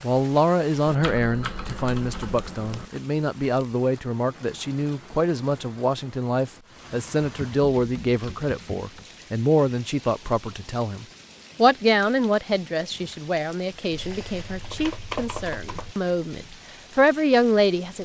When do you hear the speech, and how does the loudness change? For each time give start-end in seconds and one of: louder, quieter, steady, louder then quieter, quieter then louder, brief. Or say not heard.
0.0-17.9 steady.